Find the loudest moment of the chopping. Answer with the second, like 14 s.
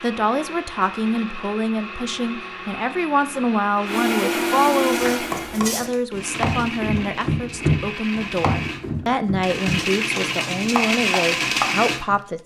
8 s.